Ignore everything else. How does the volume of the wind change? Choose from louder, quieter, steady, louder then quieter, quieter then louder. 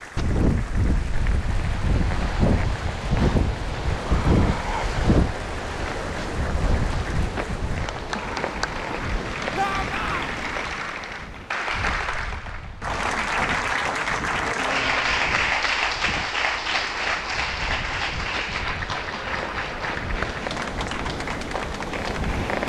quieter then louder.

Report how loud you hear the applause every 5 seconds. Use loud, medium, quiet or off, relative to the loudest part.
quiet, medium, loud, loud, medium.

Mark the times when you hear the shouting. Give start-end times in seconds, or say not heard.
9.6-10.2.